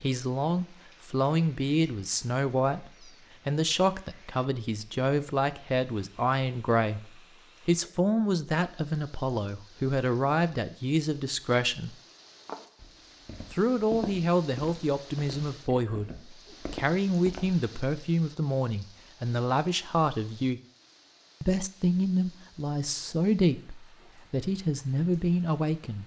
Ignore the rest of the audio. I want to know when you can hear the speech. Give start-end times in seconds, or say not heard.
0.0-11.9, 13.5-20.6, 21.4-26.0.